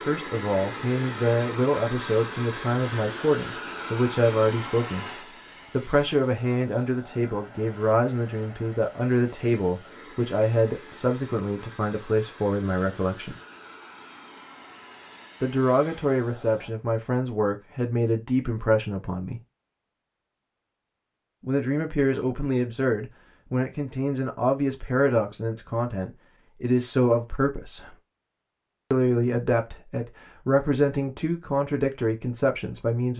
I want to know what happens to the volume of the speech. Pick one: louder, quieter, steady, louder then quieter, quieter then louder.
steady.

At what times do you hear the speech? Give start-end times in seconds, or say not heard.
0.1-13.3, 15.4-19.4, 21.4-27.9, 28.9-33.1.